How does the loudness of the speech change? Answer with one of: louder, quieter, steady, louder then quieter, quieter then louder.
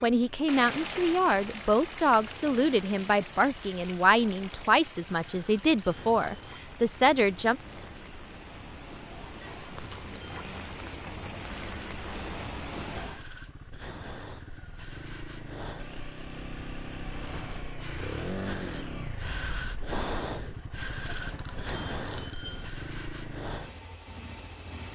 steady.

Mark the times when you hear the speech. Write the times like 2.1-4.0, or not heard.
0.0-7.5.